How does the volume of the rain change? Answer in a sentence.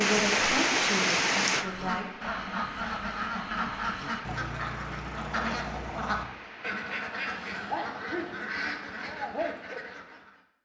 The volume of the rain goes down.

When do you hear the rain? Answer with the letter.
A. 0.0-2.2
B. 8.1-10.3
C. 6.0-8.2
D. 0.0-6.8
D.